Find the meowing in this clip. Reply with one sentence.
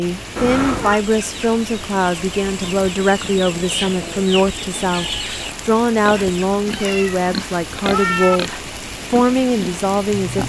You can hear the meowing from 0.3 to 1.0 s and from 6.7 to 8.4 s.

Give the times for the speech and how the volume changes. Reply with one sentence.
The speech can be heard from 0.0 to 10.4 s, at a steady volume.